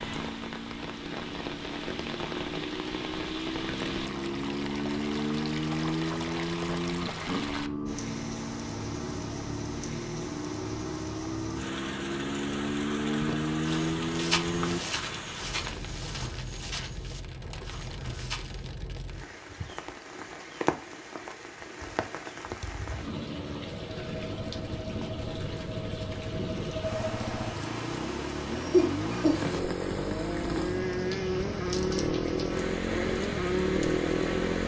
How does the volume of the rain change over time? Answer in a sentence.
The loudness of the rain stays about the same.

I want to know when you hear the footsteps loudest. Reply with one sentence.
The loudest moment of the footsteps is at 14 seconds.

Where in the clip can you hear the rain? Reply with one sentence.
The rain can be heard from 0.0 to 34.6 s.